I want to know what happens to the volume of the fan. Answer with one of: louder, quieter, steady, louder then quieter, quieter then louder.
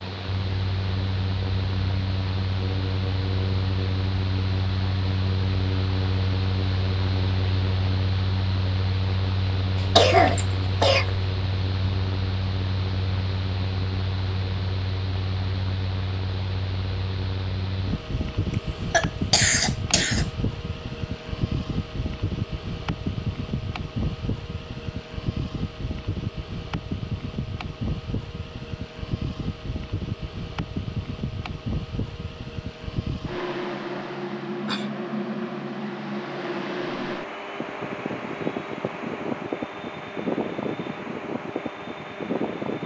steady.